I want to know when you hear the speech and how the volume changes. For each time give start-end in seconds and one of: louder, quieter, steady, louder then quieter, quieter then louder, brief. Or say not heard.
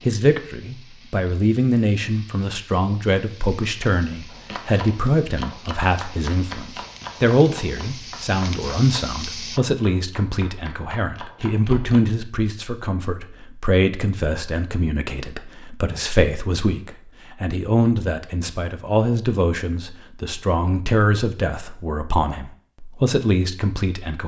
0.1-24.2 steady.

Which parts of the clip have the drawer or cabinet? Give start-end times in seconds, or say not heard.
not heard.